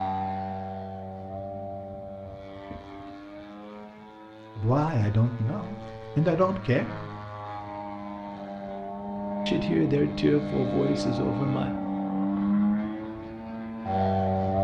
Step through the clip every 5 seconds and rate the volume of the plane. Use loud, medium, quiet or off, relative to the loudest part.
medium, medium, loud.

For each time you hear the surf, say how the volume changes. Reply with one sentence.
The surf can't be heard in this clip.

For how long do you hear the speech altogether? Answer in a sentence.
You can hear the speech for 5 seconds altogether.